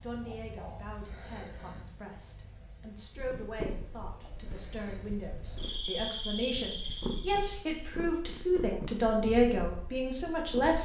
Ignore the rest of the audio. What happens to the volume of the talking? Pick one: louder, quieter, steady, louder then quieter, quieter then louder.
louder.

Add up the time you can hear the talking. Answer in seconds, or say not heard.
11 s.